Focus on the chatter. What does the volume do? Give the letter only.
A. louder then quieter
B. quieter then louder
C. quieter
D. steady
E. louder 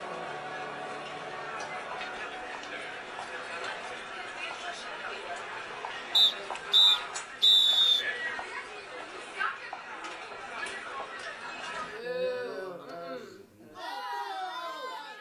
D.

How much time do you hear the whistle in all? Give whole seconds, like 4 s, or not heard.
2 s.